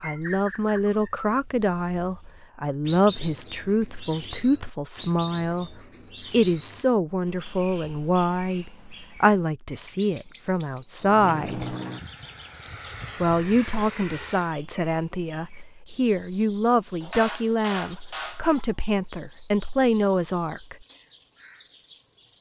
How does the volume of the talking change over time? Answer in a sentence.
The volume of the talking stays about the same.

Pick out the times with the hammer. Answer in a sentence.
The hammer can be heard from 17.0 to 18.5 s.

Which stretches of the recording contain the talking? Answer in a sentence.
The talking can be heard from 0.0 to 11.8 s and from 13.2 to 20.8 s.